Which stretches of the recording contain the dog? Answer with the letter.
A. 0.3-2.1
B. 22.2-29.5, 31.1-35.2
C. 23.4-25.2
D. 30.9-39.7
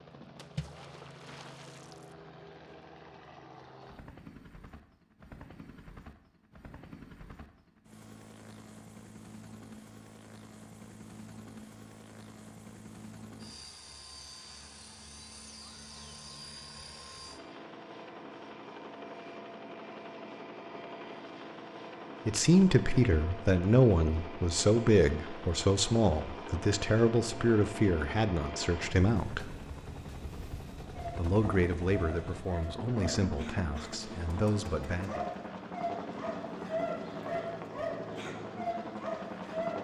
D.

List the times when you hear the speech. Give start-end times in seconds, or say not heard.
22.2-29.5, 31.1-35.2.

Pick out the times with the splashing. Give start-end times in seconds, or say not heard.
0.3-2.1.